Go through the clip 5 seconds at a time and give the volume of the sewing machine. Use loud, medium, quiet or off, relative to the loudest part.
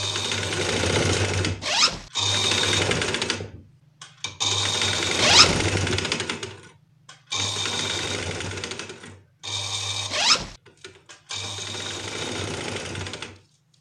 loud, loud, medium.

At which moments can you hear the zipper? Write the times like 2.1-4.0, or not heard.
1.6-2.0, 5.2-5.7, 10.1-10.6.